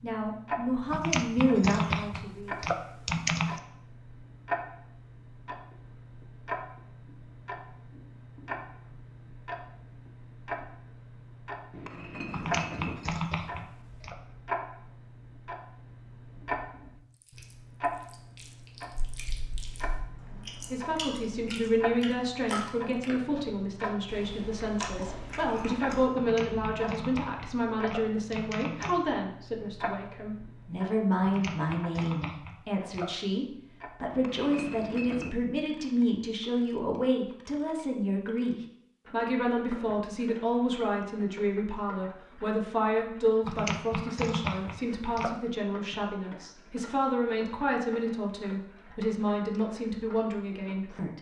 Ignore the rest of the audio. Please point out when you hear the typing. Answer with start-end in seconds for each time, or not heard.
0.9-3.6, 12.3-14.2, 26.1-28.9, 31.2-33.1, 43.4-45.3.